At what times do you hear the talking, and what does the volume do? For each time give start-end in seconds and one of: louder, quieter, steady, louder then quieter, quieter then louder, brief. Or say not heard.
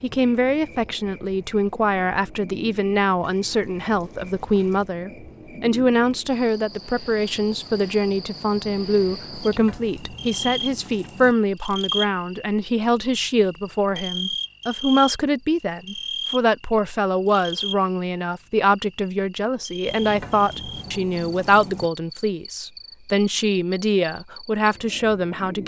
0.0-25.6 steady.